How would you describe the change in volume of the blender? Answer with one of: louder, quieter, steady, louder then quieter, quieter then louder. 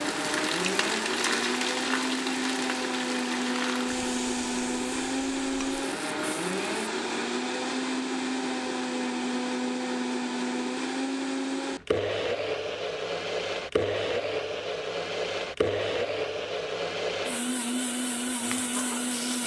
steady.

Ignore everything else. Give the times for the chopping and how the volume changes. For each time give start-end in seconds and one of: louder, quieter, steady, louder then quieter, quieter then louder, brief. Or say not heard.
not heard.